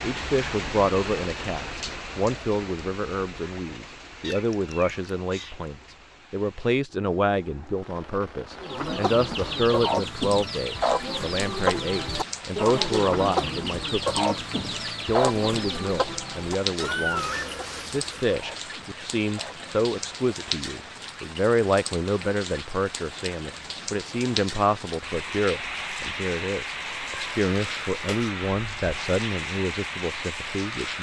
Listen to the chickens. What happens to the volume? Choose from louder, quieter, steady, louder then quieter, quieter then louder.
quieter.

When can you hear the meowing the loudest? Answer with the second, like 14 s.
17 s.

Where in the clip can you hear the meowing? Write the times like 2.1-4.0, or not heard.
4.2-5.6, 16.8-18.2, 26.8-28.3.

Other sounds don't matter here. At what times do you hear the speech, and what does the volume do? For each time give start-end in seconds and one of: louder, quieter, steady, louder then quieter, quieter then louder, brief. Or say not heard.
0.0-30.9 steady.